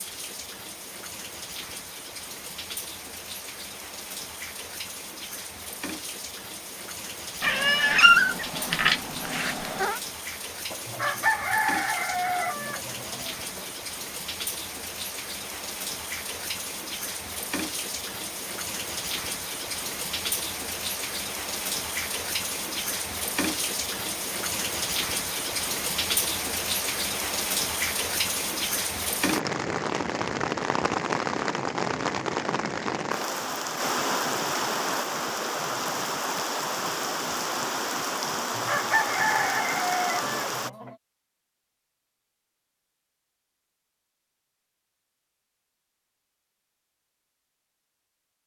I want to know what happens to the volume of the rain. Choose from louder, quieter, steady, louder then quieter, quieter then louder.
louder.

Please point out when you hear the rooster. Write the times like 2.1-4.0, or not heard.
10.7-13.7, 38.4-41.0.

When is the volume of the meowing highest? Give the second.
8 s.